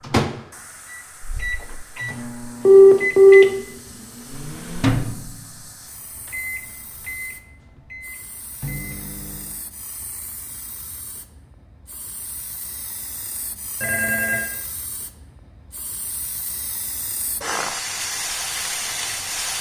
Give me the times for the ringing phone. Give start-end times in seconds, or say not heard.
2.6-3.5, 13.8-14.4.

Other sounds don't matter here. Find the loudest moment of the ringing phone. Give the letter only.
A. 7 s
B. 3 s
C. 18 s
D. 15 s
B.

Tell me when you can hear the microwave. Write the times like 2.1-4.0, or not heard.
0.0-9.6.